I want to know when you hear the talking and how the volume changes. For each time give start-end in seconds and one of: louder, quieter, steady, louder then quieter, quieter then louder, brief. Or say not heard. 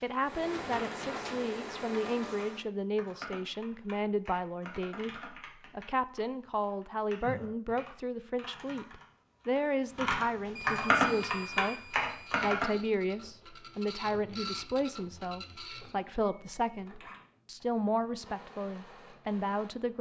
0.0-19.9 steady.